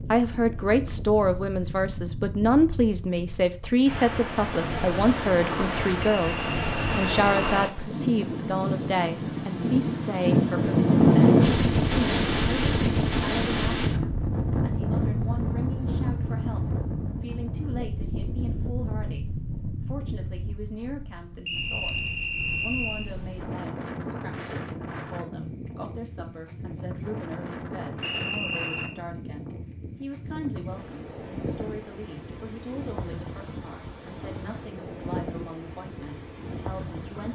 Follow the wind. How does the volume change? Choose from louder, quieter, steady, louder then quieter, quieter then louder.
louder then quieter.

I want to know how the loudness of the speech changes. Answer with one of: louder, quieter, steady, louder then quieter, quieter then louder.
quieter.